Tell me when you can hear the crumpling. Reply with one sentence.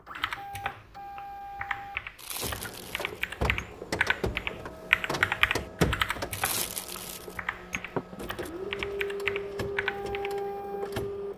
The crumpling can be heard from 2.1 to 3.6 s and from 6.3 to 8.5 s.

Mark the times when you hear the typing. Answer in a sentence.
The typing can be heard from 0.1 to 10.3 s.